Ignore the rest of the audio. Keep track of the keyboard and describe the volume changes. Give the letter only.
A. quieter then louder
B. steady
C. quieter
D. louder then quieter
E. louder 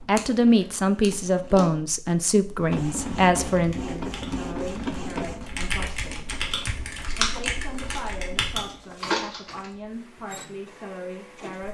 E.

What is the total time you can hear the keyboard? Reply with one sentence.
You can hear the keyboard for 6 seconds altogether.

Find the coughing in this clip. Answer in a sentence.
The coughing can't be heard in this clip.